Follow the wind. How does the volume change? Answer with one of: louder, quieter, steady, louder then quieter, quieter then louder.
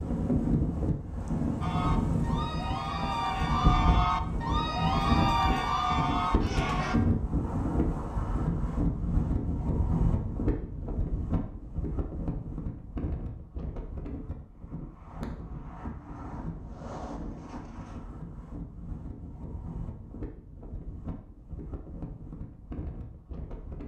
quieter.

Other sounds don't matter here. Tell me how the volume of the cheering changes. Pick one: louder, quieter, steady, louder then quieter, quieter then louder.
louder.